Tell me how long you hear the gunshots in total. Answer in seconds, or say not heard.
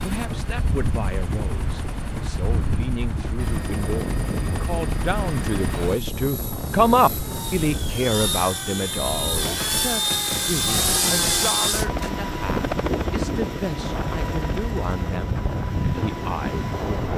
3 s.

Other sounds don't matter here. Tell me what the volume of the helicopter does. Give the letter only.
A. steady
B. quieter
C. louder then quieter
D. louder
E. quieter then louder
C.